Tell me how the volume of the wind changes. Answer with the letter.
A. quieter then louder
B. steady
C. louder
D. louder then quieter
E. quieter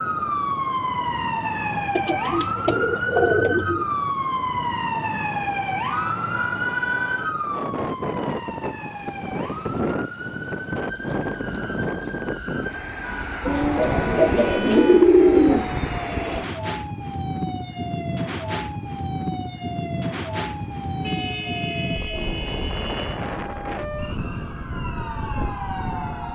C.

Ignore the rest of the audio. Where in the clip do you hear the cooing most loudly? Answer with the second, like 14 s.
15 s.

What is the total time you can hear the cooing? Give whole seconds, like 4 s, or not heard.
4 s.